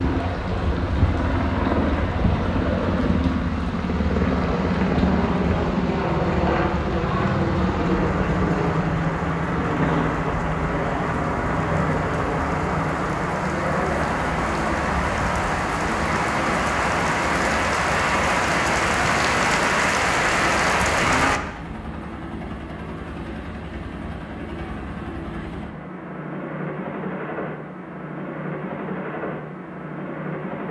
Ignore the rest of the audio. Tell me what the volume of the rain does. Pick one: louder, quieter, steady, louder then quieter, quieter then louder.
louder.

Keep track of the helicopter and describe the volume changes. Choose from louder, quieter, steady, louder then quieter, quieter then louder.
quieter.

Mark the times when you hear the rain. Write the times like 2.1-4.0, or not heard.
0.0-21.4.